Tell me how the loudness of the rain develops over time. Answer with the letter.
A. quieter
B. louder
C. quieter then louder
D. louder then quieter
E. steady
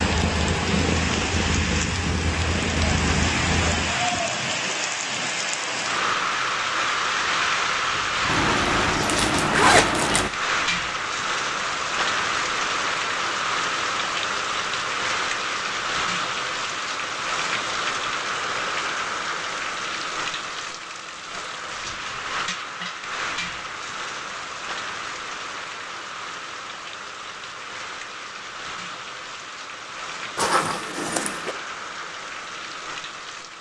A.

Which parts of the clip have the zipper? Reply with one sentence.
The zipper can be heard from 8.2 to 10.3 s and from 30.4 to 31.6 s.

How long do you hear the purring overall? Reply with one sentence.
You can hear the purring for 4 seconds altogether.